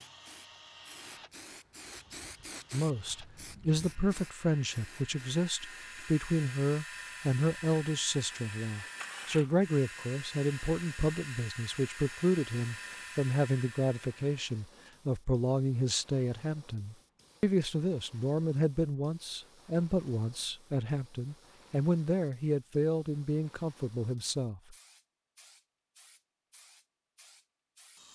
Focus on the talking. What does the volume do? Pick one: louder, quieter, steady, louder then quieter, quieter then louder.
steady.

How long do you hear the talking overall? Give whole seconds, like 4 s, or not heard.
22 s.